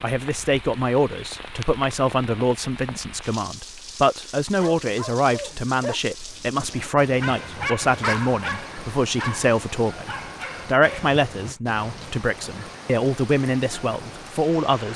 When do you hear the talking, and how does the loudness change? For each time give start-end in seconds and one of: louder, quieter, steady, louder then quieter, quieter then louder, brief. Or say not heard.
0.0-14.9 steady.